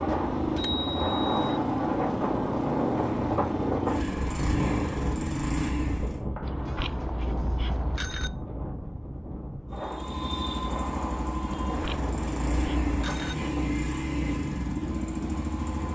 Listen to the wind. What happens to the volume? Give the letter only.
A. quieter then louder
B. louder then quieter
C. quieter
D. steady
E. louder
C.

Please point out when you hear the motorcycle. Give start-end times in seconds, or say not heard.
0.0-6.2, 9.7-15.9.